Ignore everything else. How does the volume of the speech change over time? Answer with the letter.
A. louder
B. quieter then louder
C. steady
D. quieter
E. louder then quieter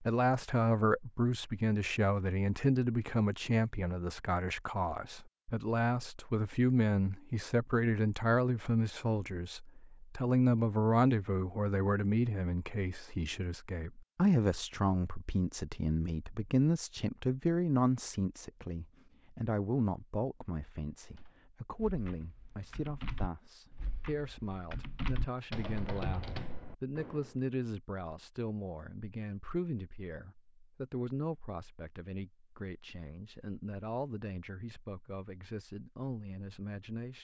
D.